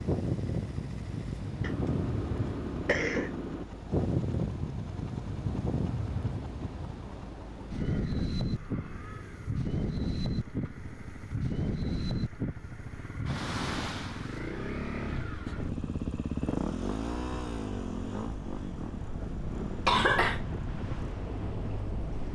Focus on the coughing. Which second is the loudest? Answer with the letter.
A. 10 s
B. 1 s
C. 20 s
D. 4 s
C.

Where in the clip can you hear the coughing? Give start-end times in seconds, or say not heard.
1.6-3.6, 19.9-20.4.